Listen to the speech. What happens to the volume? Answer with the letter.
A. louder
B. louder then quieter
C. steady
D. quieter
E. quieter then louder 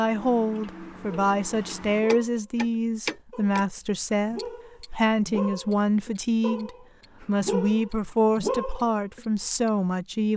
C.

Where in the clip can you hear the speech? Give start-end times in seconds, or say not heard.
0.0-10.3.